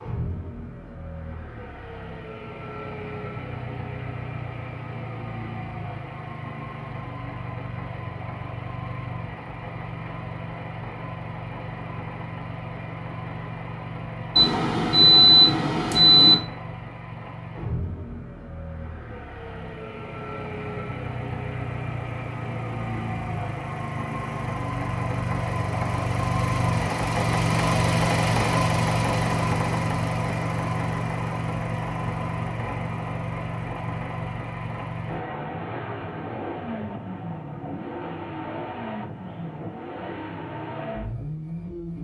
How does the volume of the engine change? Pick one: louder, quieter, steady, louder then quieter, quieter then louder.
louder then quieter.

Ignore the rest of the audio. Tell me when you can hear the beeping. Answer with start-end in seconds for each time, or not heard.
14.3-16.4.